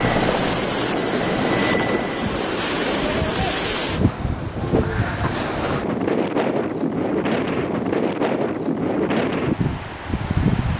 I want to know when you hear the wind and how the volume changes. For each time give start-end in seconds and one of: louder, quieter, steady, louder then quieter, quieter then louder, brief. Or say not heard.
0.0-10.7 steady.